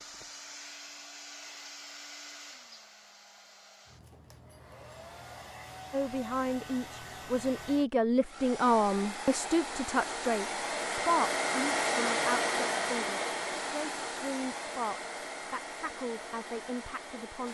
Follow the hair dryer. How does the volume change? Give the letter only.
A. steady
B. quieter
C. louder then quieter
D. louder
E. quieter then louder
C.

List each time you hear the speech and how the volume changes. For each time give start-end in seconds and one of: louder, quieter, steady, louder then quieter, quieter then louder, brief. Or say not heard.
5.9-17.4 quieter.